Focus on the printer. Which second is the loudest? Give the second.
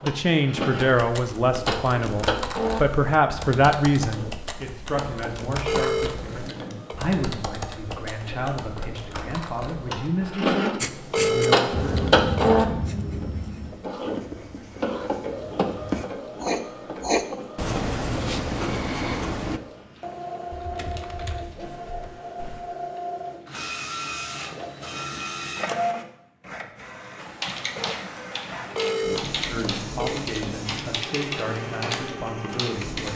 12 s.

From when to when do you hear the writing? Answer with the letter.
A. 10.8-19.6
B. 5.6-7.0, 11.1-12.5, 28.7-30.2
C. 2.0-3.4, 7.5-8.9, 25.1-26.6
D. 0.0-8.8
A.